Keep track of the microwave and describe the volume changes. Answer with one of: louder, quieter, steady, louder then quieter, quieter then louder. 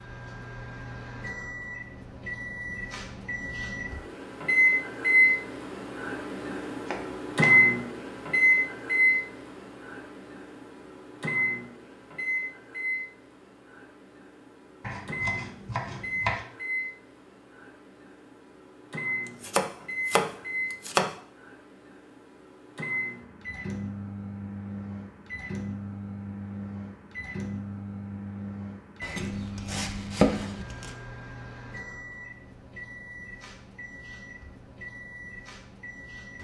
quieter.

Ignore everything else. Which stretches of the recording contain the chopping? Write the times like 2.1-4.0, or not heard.
6.8-7.5, 14.8-16.4, 19.4-21.1, 29.0-30.9.